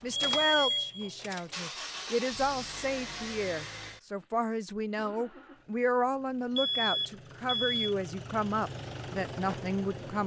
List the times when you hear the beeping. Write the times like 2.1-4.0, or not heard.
0.1-1.2, 6.5-8.0.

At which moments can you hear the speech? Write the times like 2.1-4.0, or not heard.
0.0-10.2.